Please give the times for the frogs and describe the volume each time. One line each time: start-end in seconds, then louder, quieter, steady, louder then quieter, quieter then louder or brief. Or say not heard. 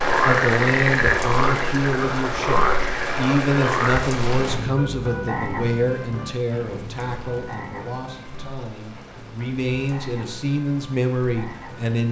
0.0-12.0 quieter.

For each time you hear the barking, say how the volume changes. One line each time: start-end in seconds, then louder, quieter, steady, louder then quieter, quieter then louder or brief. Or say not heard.
not heard.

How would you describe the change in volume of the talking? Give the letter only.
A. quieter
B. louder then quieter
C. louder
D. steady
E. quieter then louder
E.